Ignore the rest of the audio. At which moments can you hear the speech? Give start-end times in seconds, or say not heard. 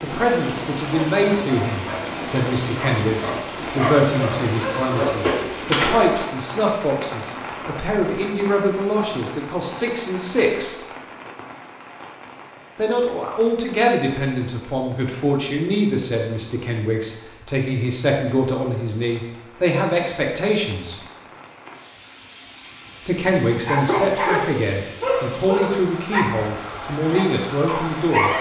0.0-10.8, 12.8-20.9, 23.1-28.3.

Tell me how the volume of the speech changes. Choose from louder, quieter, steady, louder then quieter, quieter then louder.
steady.